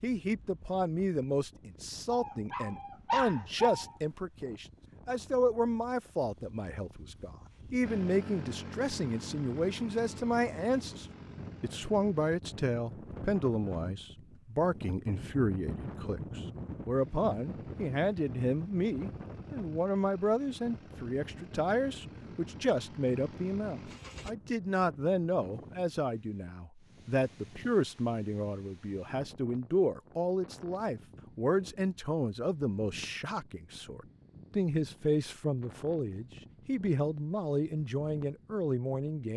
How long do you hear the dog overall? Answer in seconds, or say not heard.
2 s.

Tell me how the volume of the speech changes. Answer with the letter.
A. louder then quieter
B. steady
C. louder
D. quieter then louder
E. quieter
B.